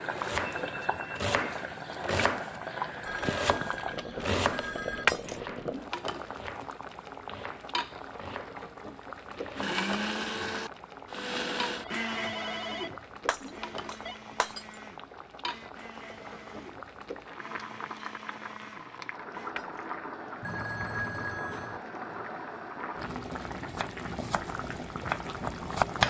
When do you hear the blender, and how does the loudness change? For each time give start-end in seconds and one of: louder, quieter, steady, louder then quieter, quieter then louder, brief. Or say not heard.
9.6-19.6 quieter.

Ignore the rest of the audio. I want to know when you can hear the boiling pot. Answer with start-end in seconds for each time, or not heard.
0.0-26.0.